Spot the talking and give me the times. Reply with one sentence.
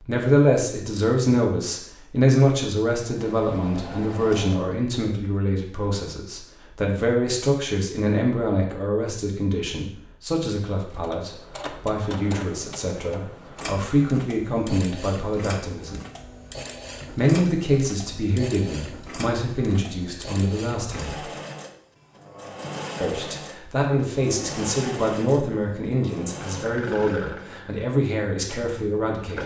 You can hear the talking from 0.1 to 16.0 s, from 17.1 to 21.2 s and from 23.0 to 29.4 s.